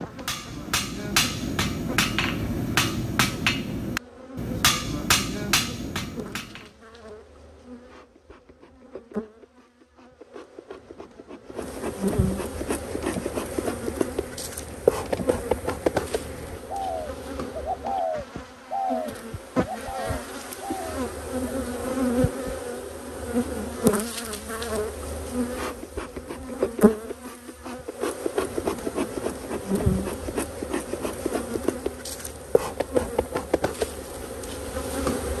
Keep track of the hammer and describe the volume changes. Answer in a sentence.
The loudness of the hammer stays about the same.